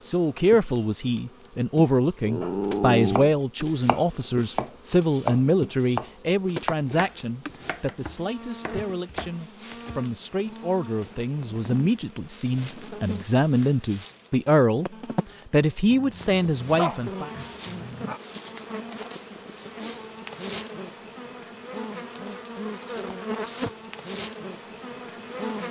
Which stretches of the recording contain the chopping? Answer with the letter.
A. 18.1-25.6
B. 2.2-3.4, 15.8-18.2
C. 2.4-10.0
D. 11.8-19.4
C.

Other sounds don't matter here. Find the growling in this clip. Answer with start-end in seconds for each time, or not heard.
2.2-3.4, 15.8-18.2.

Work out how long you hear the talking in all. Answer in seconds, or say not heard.
17 s.